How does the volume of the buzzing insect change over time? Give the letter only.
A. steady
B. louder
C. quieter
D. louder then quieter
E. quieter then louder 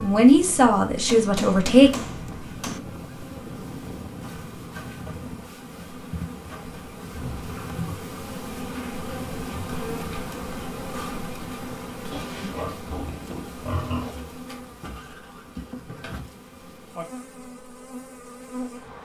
D.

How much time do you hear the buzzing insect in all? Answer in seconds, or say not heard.
19 s.